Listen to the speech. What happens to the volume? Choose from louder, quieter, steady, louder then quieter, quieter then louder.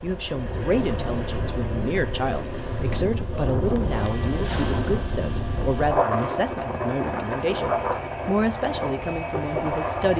steady.